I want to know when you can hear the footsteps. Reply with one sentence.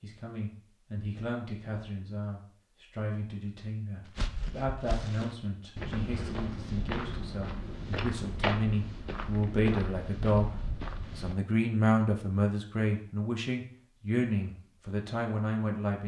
The footsteps can be heard from 4.0 to 11.3 s.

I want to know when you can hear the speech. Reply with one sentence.
You can hear the speech from 0.0 to 16.0 s.